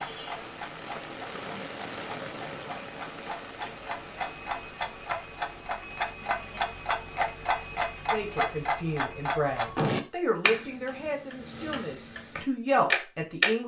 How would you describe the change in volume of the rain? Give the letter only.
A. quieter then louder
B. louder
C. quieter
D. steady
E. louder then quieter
C.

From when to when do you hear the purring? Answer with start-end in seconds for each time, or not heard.
not heard.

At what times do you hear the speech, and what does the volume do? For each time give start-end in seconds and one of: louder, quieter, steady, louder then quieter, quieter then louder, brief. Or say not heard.
8.1-13.6 quieter then louder.